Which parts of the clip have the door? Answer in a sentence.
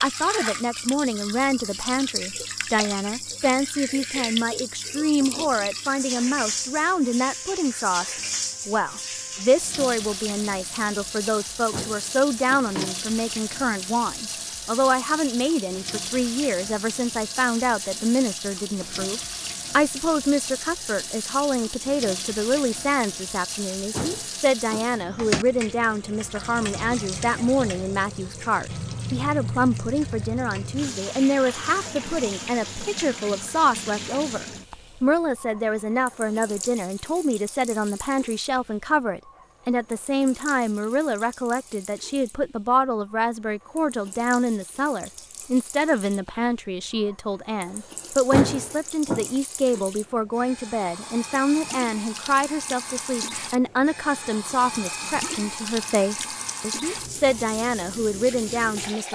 You can hear the door from 11.7 to 12.9 s, from 23.9 to 24.9 s and from 48.3 to 49.3 s.